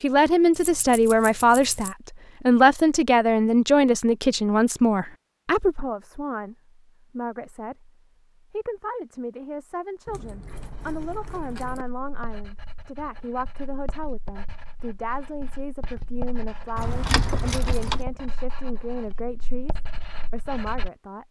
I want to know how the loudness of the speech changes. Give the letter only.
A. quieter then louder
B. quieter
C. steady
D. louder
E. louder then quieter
B.